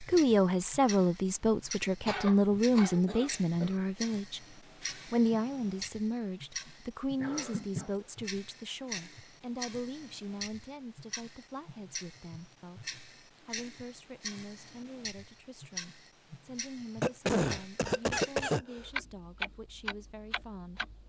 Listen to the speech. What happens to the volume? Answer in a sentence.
The volume of the speech goes down.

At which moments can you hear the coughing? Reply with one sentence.
You can hear the coughing from 2.0 to 3.8 s, from 7.2 to 8.1 s and from 17.0 to 18.9 s.